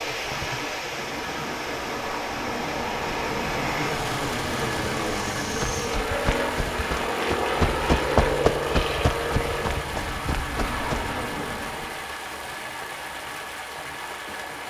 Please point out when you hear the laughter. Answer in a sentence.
You can't hear the laughter here.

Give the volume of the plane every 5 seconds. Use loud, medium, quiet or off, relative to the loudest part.
medium, loud, medium.